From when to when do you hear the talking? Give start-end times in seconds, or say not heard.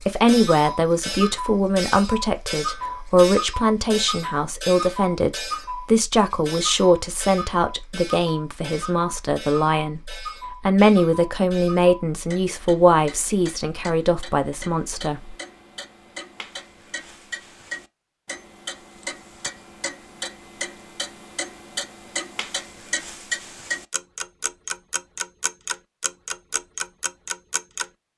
0.1-15.3.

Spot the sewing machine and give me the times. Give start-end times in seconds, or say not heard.
not heard.